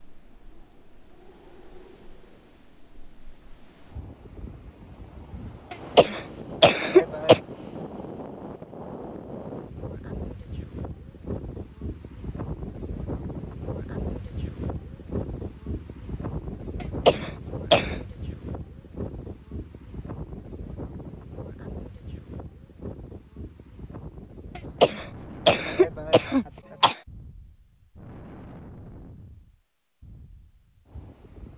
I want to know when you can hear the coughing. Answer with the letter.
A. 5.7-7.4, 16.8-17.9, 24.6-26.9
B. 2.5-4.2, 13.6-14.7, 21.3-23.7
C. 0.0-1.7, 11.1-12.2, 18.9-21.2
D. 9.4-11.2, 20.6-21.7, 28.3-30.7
A.